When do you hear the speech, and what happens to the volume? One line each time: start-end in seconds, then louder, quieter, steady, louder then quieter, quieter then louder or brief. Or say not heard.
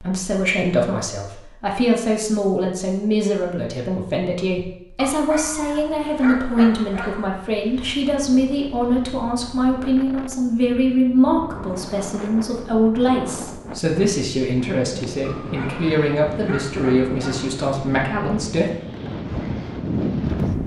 0.0-18.7 steady.